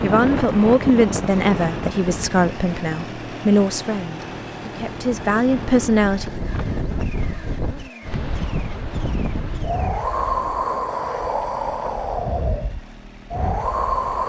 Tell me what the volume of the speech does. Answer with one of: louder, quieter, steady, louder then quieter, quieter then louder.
quieter then louder.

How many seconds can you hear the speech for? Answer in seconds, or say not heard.
6 s.